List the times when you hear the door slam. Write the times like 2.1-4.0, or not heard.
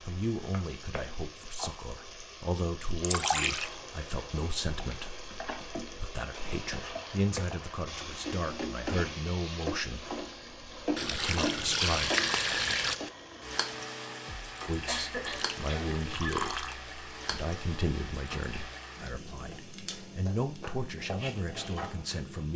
not heard.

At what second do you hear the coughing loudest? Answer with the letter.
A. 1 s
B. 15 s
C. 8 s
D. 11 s
B.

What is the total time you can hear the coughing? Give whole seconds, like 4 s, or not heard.
2 s.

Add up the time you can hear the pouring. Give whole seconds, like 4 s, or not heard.
4 s.